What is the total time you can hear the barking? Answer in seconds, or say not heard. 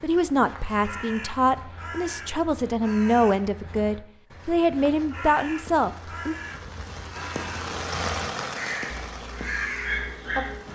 2 s.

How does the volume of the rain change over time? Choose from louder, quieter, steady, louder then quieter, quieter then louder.
louder then quieter.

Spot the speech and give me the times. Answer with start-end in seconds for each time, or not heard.
0.0-6.3.